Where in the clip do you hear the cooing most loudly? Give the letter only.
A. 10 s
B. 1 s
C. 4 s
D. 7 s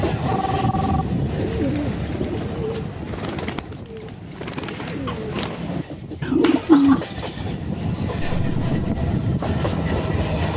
D.